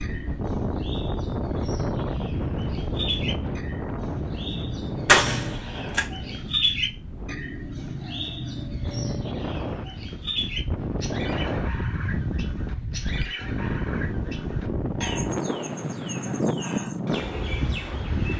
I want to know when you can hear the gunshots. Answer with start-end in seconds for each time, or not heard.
5.0-6.0.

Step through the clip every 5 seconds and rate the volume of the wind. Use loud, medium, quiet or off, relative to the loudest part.
loud, medium, loud, loud.